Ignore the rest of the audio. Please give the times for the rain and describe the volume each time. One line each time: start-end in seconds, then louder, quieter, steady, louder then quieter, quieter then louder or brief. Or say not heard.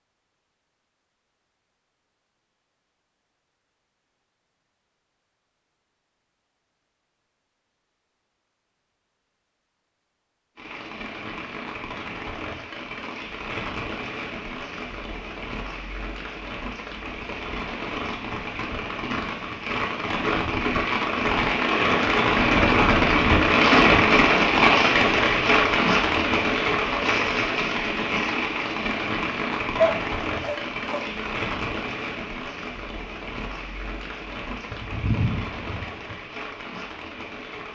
10.6-37.7 louder then quieter.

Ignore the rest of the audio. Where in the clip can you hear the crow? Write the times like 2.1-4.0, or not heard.
not heard.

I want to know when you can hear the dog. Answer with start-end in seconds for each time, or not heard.
29.8-31.4.